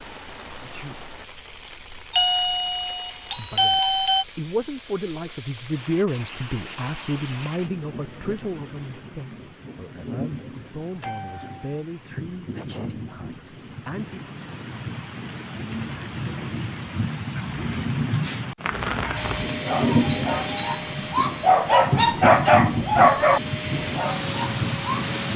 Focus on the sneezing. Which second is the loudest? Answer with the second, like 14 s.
18 s.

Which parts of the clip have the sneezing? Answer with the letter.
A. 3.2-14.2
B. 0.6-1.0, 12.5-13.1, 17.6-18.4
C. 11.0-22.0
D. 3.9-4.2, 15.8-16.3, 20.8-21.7
B.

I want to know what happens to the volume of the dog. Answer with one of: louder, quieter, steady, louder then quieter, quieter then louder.
louder.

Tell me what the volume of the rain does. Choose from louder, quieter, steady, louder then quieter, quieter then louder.
louder.